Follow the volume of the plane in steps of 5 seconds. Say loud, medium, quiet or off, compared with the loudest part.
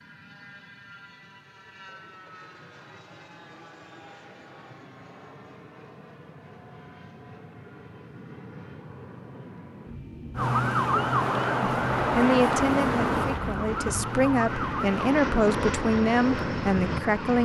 quiet, quiet, medium, loud.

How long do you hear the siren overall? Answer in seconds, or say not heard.
7 s.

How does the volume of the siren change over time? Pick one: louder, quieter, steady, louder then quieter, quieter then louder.
quieter.